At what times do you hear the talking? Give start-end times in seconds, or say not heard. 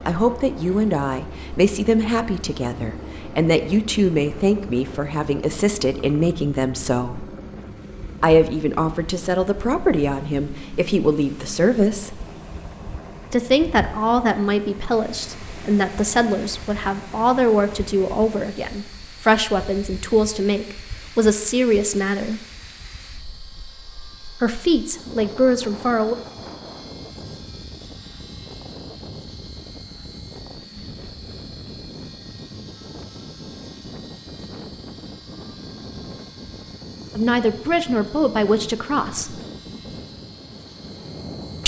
0.1-7.2, 8.2-12.2, 13.3-22.4, 24.4-26.1, 37.1-39.4.